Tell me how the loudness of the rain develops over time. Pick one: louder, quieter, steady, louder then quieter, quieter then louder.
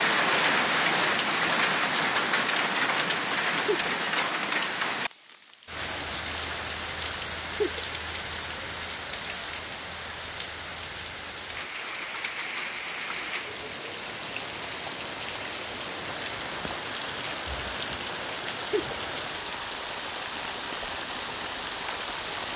quieter.